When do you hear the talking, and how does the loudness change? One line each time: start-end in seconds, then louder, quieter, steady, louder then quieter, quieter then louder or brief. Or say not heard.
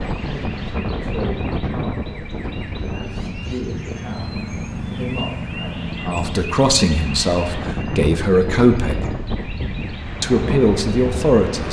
0.1-9.2 louder
10.2-11.6 brief.